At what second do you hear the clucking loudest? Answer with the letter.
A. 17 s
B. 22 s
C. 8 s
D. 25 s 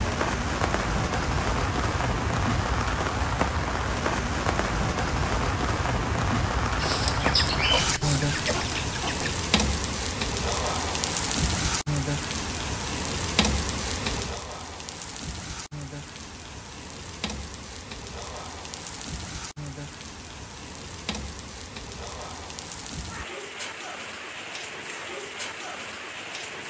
C.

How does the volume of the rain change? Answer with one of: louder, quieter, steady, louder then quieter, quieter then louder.
quieter.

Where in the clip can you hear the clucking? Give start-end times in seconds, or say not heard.
6.8-9.3.